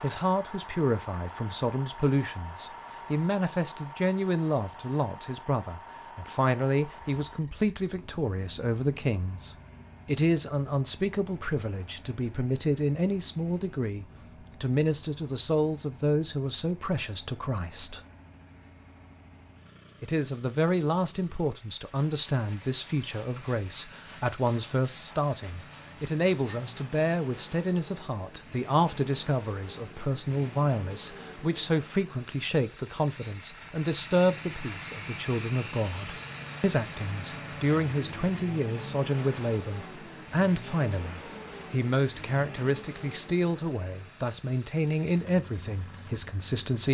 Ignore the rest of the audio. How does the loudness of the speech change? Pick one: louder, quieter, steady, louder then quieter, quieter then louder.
steady.